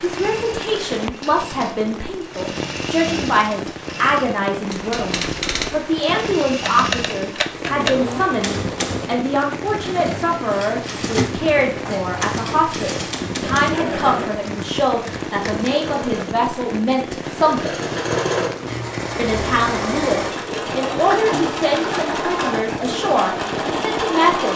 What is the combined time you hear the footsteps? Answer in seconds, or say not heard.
not heard.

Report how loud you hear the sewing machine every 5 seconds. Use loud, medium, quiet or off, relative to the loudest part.
medium, medium, medium, loud, loud.